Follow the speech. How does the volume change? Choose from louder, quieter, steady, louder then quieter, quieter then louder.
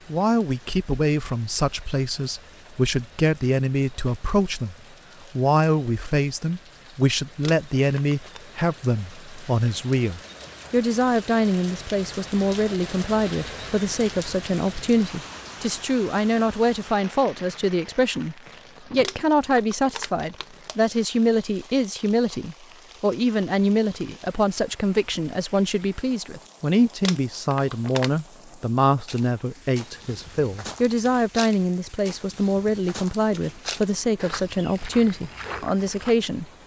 steady.